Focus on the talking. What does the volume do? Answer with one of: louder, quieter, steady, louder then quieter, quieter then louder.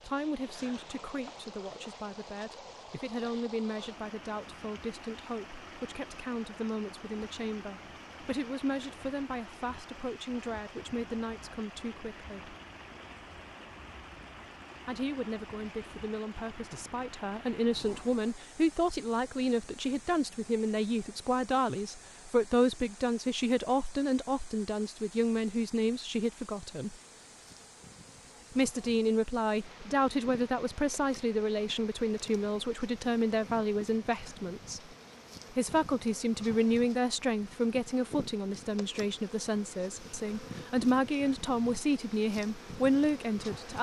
louder.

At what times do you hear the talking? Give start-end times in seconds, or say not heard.
0.0-12.6, 14.8-26.9, 28.6-34.8, 35.5-43.7.